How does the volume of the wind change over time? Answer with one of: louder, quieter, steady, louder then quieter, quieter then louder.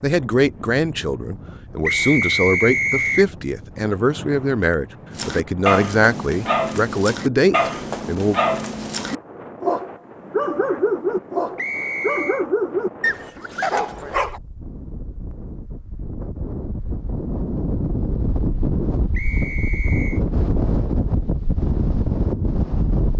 louder.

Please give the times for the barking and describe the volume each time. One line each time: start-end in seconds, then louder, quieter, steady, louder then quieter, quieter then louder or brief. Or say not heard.
5.1-14.4 steady.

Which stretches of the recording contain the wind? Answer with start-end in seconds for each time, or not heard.
0.0-23.1.